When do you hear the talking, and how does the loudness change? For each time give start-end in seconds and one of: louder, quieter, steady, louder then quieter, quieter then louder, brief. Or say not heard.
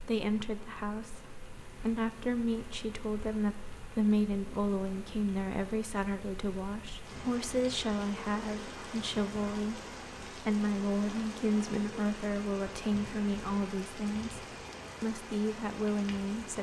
0.0-16.5 steady.